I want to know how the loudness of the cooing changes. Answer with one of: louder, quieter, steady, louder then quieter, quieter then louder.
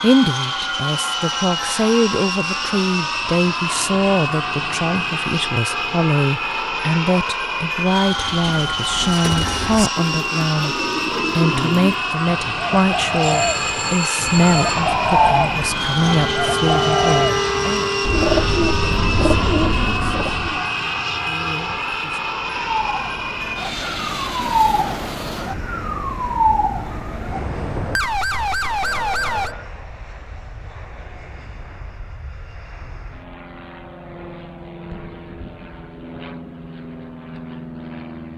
louder.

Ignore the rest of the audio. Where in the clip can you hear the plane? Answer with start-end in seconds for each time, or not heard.
0.0-38.3.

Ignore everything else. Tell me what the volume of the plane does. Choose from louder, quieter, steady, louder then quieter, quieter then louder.
quieter.